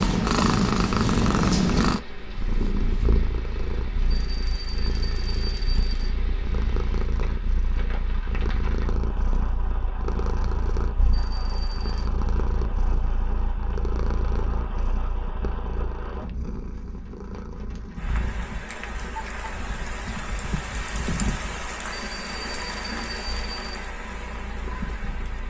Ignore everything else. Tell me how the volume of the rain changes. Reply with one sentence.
The volume of the rain goes up.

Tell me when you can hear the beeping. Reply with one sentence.
You can hear the beeping from 4.1 to 6.1 s, from 11.1 to 12.1 s and from 21.9 to 23.9 s.